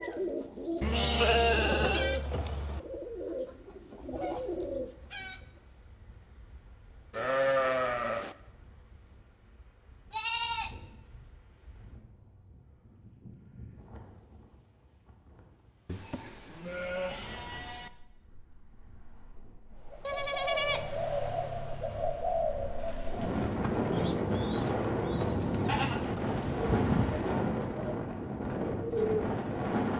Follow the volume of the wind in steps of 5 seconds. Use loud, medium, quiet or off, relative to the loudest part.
quiet, quiet, quiet, quiet, loud, loud.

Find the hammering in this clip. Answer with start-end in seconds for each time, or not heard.
not heard.